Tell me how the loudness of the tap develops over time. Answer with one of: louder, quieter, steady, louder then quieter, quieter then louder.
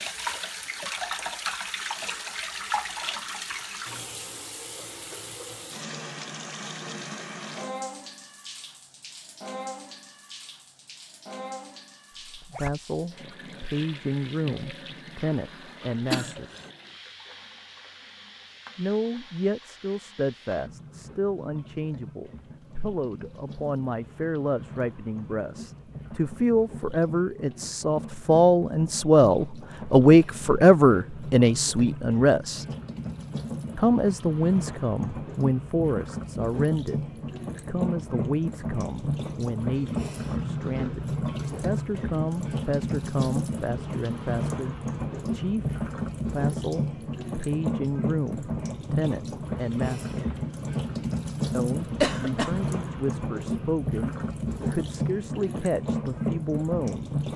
quieter then louder.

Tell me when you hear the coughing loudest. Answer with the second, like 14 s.
52 s.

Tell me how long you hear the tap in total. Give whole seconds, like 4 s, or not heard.
57 s.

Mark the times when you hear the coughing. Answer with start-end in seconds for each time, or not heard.
16.1-16.7, 52.0-52.6.